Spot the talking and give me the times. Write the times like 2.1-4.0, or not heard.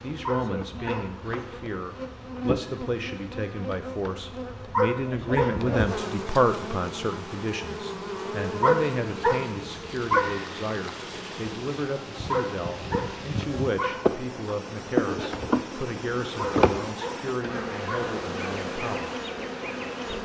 0.0-19.1.